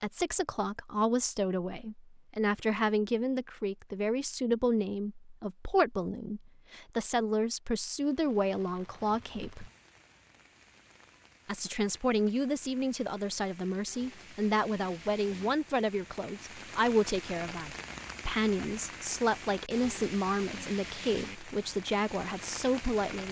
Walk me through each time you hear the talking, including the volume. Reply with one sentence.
The talking can be heard from 0.0 to 9.7 s, at a steady volume; and from 11.4 to 23.2 s, at a steady volume.